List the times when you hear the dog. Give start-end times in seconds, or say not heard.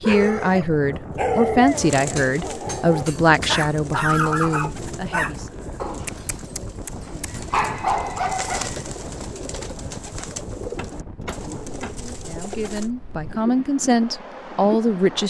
0.0-8.7.